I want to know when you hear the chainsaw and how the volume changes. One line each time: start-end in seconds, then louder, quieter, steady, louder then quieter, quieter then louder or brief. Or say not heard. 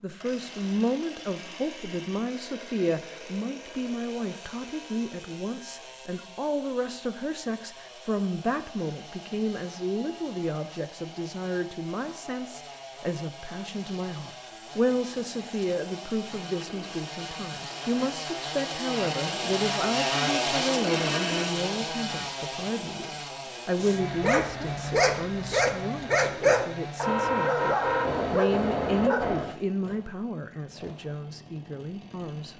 0.0-32.5 louder then quieter.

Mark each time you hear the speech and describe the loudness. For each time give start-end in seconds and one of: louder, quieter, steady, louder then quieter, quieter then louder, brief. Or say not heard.
0.0-32.5 steady.